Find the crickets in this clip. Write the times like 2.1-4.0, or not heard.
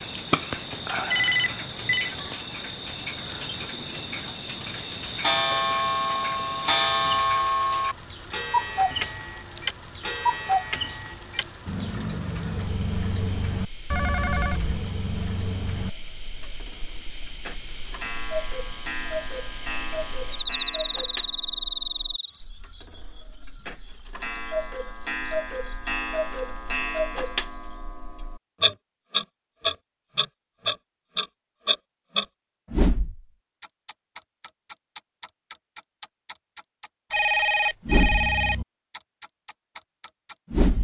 0.0-28.0.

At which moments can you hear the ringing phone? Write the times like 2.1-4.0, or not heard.
1.1-2.1, 13.9-14.8, 37.1-38.5.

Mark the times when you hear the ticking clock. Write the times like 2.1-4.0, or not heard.
0.0-40.8.